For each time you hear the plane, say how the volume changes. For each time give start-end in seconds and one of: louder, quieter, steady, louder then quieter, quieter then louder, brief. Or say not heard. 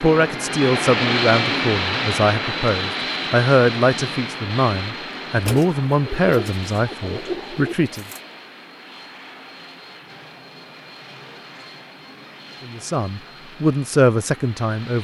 0.0-14.9 quieter.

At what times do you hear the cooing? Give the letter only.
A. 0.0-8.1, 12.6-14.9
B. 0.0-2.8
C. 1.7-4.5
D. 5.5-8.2
D.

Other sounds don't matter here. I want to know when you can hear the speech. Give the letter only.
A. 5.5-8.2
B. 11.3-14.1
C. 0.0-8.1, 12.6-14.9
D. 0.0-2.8
C.